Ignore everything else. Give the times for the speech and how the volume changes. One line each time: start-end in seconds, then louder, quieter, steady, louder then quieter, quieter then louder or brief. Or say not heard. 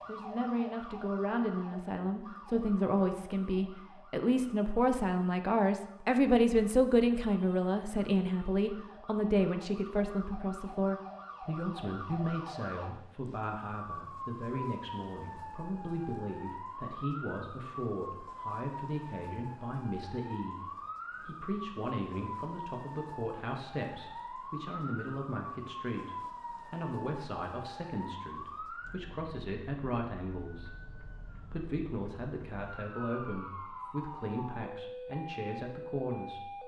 0.1-36.6 quieter.